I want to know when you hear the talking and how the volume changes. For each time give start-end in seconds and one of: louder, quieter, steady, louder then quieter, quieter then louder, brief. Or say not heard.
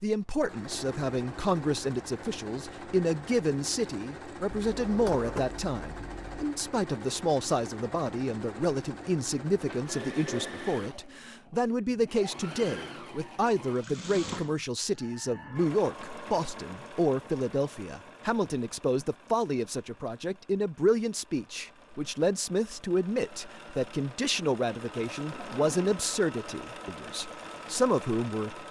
0.0-28.6 steady.